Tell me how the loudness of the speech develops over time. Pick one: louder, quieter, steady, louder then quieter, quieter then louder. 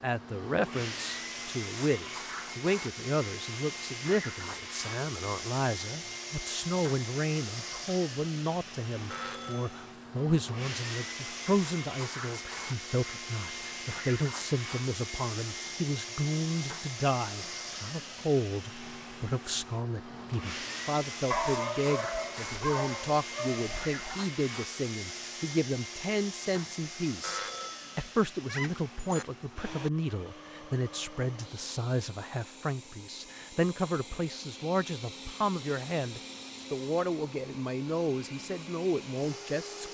steady.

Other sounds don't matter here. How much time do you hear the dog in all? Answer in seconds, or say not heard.
3 s.